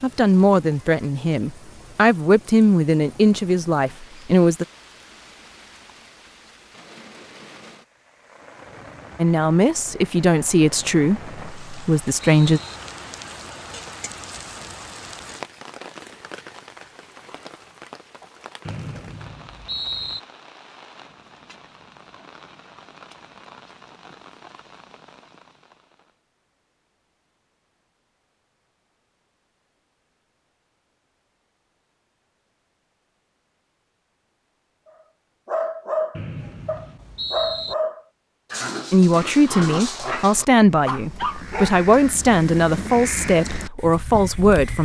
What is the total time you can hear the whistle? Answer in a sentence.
The whistle can be heard for 5 seconds in total.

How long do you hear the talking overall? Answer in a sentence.
You can hear the talking for 14 seconds altogether.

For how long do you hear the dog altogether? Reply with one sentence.
You can hear the dog for 6 seconds altogether.